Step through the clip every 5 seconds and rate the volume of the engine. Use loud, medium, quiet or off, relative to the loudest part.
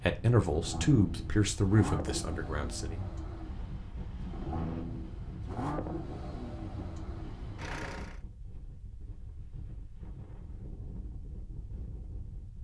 loud, loud, off.